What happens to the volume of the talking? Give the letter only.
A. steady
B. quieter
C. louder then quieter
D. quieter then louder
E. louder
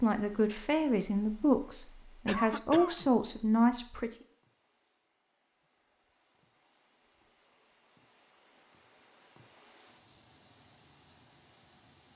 D.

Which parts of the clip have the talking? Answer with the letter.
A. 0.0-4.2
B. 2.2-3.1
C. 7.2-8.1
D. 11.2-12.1
A.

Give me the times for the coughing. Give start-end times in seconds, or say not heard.
2.2-3.1.